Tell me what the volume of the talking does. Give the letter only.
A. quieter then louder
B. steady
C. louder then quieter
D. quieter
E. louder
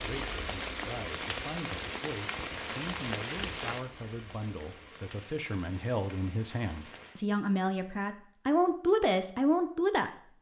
E.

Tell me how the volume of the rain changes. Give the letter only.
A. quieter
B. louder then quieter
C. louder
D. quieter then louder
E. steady
A.